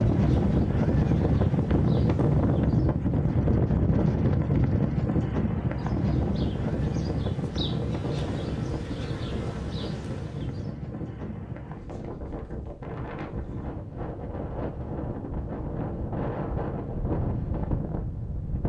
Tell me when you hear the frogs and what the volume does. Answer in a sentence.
You can't hear the frogs here.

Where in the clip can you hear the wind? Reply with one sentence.
The wind can be heard from 0.0 to 18.6 s.